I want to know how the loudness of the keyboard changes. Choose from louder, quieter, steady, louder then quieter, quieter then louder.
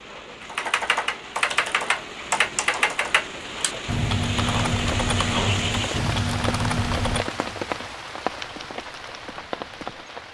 quieter.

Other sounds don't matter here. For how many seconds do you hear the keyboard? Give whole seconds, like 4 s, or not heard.
10 s.